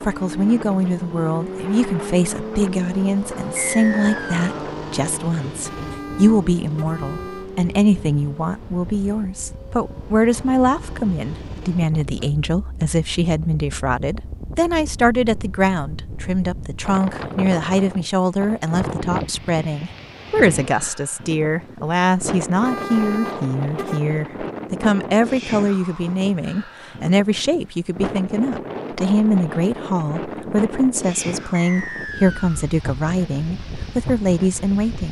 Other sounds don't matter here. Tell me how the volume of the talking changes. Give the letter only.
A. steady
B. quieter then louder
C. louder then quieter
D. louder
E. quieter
A.